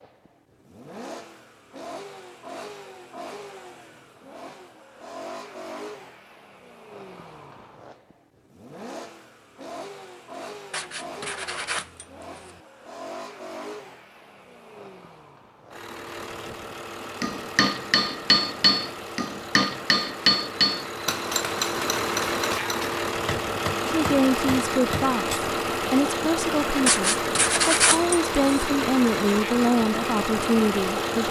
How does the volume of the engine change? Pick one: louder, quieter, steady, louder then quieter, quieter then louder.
louder.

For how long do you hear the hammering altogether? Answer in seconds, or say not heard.
8 s.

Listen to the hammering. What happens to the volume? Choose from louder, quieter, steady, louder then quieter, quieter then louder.
quieter.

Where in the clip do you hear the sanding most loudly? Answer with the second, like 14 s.
28 s.